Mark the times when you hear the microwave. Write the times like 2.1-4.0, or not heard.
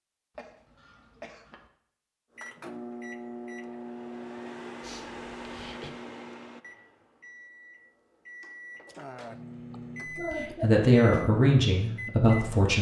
2.4-12.3.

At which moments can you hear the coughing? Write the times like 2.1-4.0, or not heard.
0.3-1.7, 4.8-5.9, 9.7-10.7.